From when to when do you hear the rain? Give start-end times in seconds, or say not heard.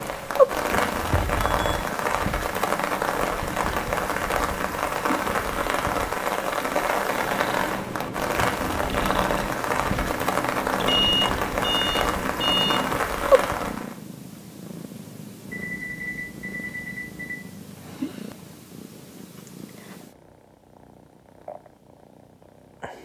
0.0-13.9.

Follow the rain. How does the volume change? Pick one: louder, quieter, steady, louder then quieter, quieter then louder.
steady.